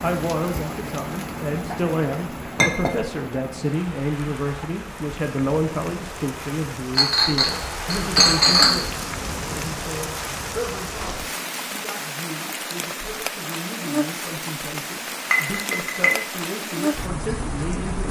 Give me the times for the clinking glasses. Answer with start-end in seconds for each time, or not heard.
2.5-3.0, 7.0-8.8, 15.3-16.2.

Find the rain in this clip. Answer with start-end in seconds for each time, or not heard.
0.0-18.0.